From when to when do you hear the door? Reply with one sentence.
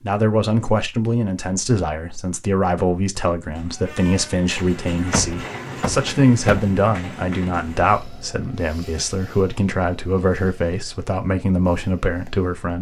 The door can be heard from 5.1 to 6.7 s.